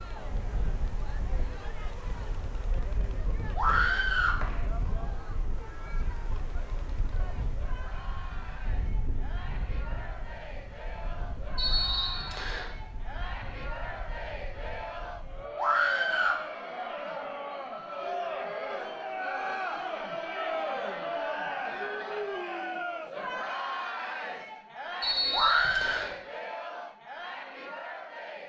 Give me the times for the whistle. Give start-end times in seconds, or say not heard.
3.6-4.7, 11.6-12.7, 25.0-26.1.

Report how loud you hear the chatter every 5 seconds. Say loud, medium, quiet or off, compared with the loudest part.
quiet, quiet, medium, loud, loud, medium.